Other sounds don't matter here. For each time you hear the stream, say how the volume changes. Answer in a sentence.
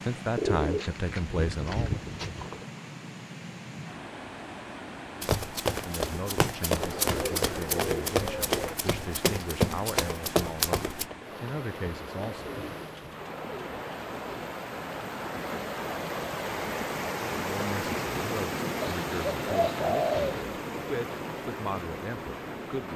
The stream can be heard from 0.0 to 22.9 s, getting louder.